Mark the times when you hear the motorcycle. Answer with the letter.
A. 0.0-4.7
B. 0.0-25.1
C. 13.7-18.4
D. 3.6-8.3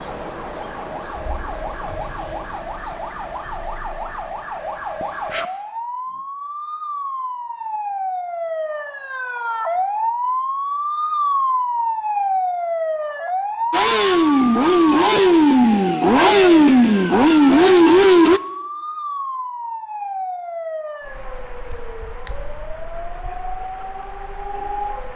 C.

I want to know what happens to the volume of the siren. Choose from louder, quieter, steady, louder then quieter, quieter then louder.
louder then quieter.